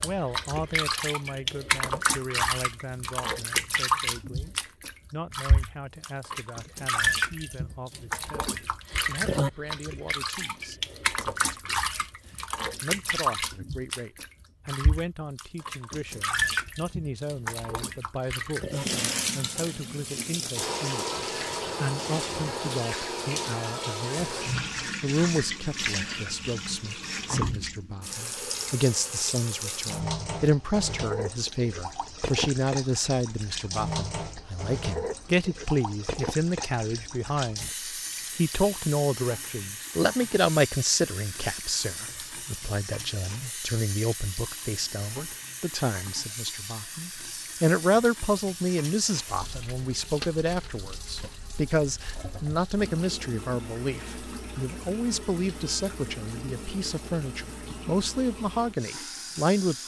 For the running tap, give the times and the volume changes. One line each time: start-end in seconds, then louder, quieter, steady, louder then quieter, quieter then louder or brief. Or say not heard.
0.0-59.8 quieter.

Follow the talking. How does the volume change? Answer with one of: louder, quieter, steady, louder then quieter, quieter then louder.
louder.